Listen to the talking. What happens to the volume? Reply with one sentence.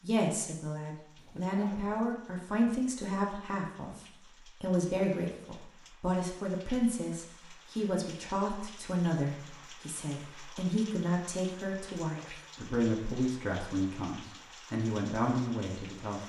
The loudness of the talking stays about the same.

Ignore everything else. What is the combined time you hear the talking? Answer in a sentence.
The talking can be heard for 16 seconds in total.